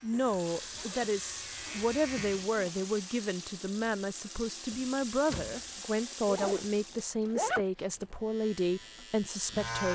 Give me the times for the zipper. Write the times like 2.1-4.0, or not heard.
0.7-2.8, 6.2-8.2.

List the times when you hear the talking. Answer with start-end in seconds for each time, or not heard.
0.0-9.9.